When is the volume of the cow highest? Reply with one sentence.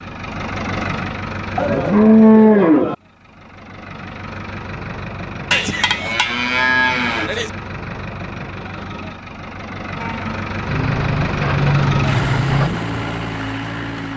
The volume of the cow peaks at 2 seconds.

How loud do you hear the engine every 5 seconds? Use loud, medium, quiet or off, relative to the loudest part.
medium, medium, loud.